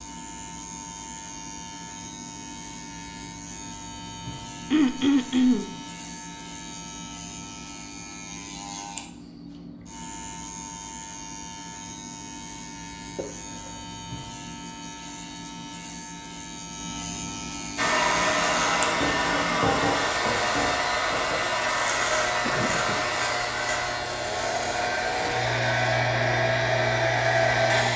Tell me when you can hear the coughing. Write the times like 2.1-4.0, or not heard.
4.7-5.7, 13.2-13.7, 22.4-23.0.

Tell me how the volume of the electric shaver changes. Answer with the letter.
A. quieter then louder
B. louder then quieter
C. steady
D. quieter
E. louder
E.